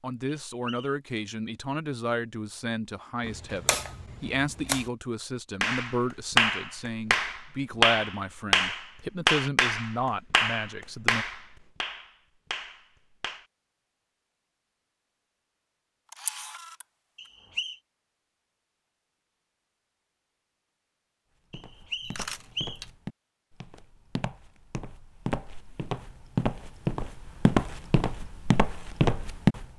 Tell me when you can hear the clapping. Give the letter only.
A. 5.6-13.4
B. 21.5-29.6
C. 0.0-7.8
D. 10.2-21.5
A.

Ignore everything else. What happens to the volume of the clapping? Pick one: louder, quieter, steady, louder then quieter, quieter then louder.
quieter.